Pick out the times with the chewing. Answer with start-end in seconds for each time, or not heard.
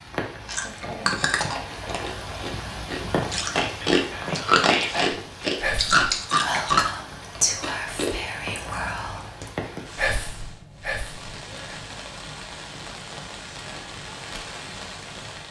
0.5-8.1.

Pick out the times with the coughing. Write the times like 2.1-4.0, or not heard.
not heard.